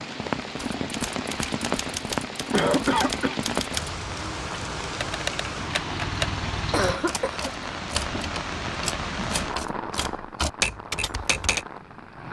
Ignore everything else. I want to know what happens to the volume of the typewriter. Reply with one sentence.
The volume of the typewriter goes up.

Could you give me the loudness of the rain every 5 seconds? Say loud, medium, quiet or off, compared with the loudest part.
loud, loud, medium.